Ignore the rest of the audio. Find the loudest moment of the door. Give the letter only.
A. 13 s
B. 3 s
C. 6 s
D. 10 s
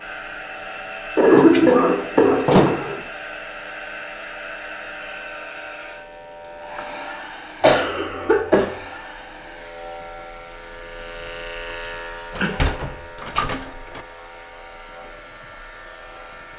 B.